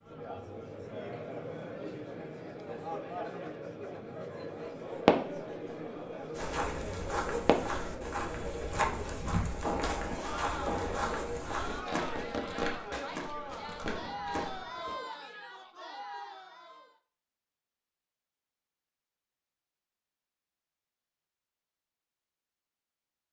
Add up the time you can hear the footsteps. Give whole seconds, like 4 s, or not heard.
8 s.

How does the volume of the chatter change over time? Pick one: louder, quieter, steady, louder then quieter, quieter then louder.
steady.